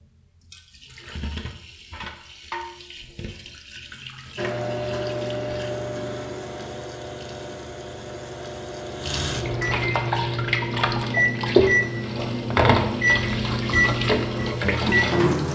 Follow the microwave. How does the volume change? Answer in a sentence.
The volume of the microwave goes down, then up.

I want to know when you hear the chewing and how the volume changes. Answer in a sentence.
You can't hear the chewing here.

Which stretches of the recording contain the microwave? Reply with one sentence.
The microwave can be heard from 4.3 to 15.3 s.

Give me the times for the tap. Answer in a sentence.
The tap can be heard from 0.0 to 15.4 s.